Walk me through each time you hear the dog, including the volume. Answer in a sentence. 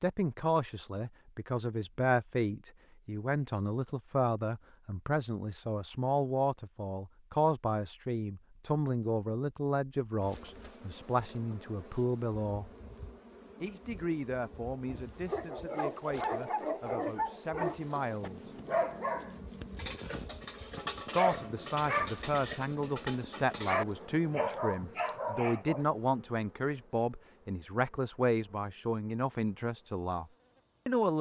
The dog can be heard from 14.8 to 25.9 s, at a steady volume.